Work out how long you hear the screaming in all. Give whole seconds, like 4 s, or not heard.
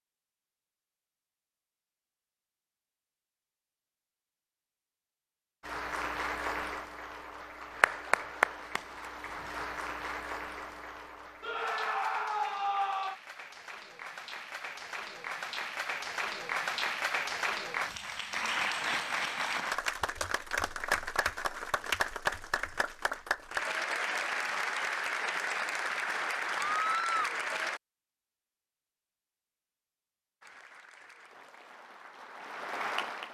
2 s.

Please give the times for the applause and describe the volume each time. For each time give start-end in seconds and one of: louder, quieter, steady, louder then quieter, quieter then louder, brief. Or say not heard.
5.6-27.8 quieter then louder
30.4-33.2 brief.